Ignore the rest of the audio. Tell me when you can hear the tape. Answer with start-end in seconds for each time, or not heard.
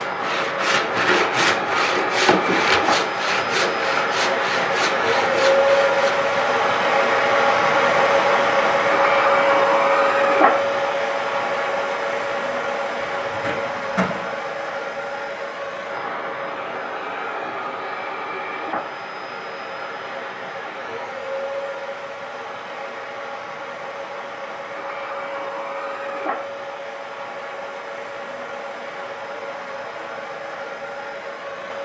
13.0-14.2.